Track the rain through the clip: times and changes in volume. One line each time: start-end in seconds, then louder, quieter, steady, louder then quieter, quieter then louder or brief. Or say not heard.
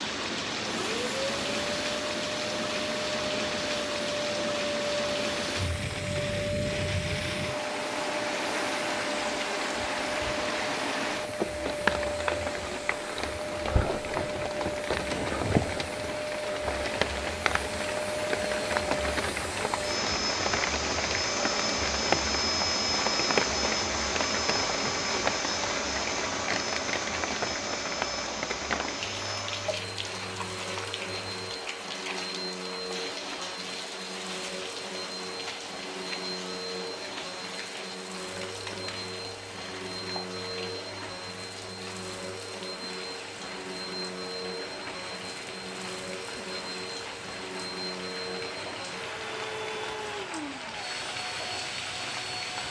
0.0-52.6 quieter.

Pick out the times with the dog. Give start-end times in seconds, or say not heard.
not heard.